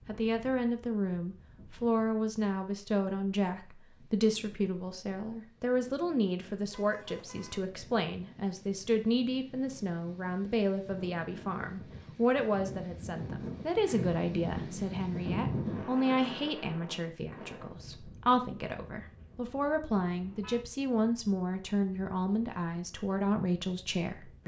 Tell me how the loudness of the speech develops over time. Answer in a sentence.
The volume of the speech stays about the same.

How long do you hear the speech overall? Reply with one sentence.
You can hear the speech for 24 seconds altogether.